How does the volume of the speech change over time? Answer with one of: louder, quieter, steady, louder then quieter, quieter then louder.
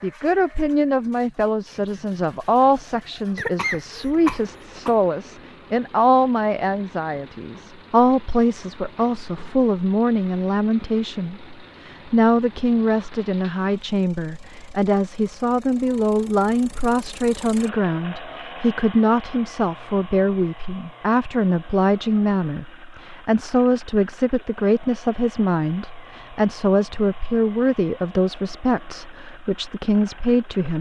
steady.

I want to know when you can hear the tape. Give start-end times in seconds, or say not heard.
not heard.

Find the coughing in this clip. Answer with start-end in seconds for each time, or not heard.
3.4-5.0.